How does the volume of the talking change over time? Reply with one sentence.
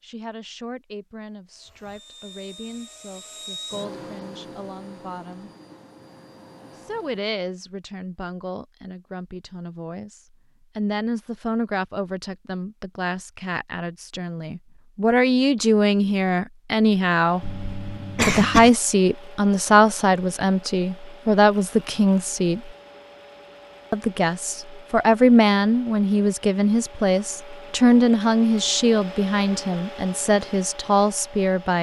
The loudness of the talking goes up.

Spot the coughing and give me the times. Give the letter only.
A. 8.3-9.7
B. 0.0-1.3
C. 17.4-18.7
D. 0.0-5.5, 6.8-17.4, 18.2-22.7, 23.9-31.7
C.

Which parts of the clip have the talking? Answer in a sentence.
The talking can be heard from 0.0 to 5.5 s, from 6.8 to 17.4 s, from 18.2 to 22.7 s and from 23.9 to 31.7 s.